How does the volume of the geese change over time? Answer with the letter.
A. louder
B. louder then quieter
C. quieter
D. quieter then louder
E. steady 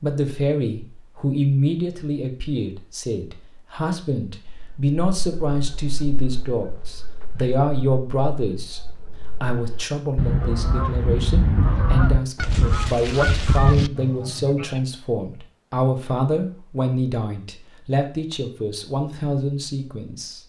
A.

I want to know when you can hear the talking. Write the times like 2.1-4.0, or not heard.
0.0-20.4.